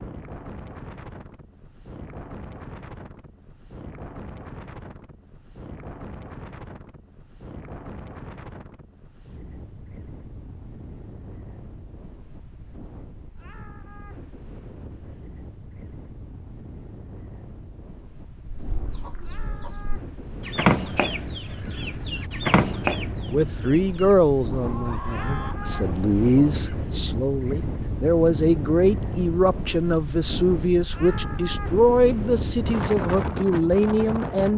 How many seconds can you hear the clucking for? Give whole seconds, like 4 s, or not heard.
8 s.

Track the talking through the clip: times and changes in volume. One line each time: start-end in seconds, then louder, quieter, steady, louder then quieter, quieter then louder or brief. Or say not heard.
23.3-34.5 steady.